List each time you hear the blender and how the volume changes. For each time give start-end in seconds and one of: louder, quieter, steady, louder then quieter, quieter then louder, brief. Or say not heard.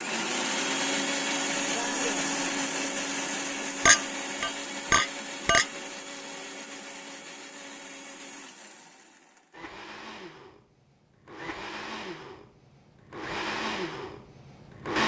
0.0-15.0 quieter then louder.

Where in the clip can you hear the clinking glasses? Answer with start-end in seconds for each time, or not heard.
3.9-5.7.